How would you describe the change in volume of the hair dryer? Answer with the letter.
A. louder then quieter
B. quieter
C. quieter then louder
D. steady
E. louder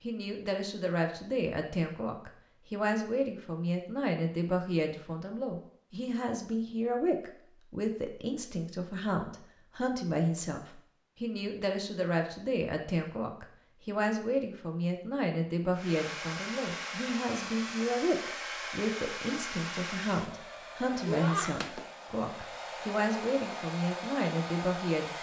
D.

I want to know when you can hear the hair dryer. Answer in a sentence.
You can hear the hair dryer from 15.8 to 25.1 s.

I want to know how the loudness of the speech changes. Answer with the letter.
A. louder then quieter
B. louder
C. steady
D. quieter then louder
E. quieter
C.